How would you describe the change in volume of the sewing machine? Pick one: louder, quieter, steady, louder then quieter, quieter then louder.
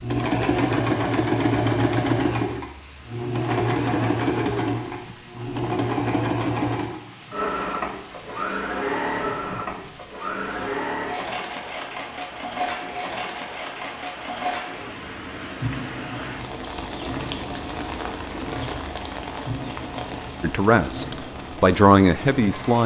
quieter.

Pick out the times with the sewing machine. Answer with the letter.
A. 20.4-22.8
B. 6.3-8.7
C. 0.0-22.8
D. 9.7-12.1
C.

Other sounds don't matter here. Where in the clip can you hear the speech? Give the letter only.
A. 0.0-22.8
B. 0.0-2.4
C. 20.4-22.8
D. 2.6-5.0
C.